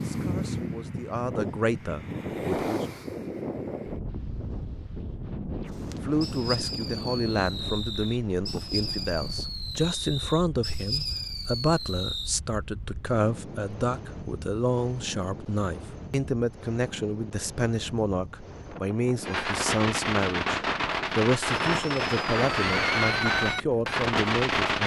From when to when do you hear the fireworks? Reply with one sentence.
The fireworks can be heard from 5.7 to 12.3 s and from 19.2 to 24.8 s.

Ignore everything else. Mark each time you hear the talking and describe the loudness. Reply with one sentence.
You can hear the talking briefly from 0.0 to 2.9 s; and from 6.0 to 24.8 s, at a steady volume.